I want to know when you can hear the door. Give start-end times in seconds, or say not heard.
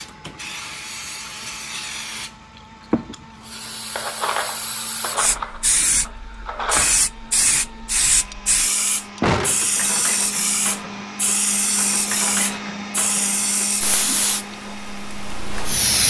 0.1-0.5, 9.2-10.1.